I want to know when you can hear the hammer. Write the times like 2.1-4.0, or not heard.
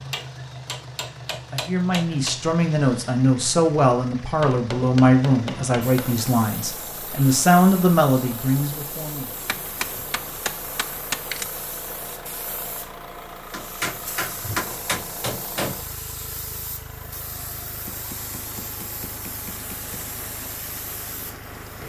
0.1-2.4, 4.4-6.2, 9.4-11.5, 13.5-15.8, 17.9-19.9.